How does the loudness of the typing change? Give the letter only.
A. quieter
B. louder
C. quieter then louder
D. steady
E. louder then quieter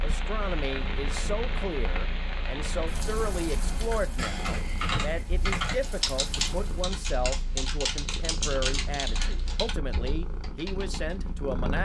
A.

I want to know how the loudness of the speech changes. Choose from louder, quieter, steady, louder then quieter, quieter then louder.
steady.